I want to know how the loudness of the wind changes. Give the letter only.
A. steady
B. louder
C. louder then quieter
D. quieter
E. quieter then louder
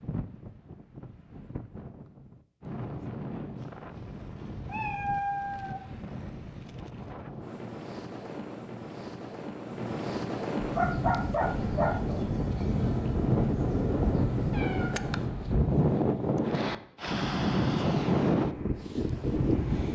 B.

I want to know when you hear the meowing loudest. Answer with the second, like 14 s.
5 s.